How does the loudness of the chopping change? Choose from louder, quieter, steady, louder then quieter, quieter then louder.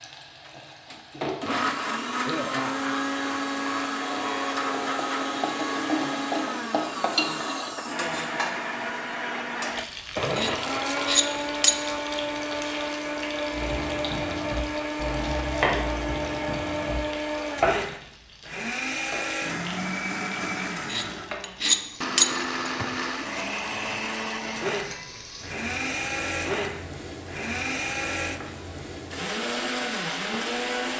louder then quieter.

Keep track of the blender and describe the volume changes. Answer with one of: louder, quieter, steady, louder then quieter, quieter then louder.
steady.